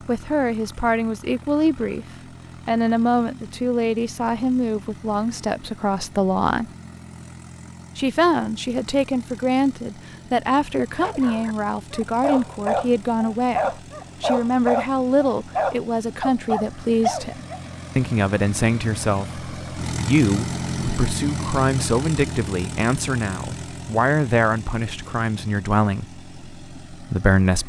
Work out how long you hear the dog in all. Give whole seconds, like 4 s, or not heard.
7 s.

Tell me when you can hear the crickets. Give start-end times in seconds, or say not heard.
not heard.